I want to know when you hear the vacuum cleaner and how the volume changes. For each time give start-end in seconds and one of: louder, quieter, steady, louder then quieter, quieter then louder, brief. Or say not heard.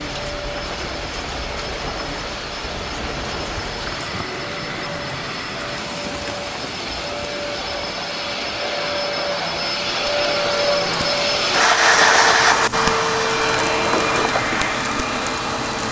0.0-15.8 louder.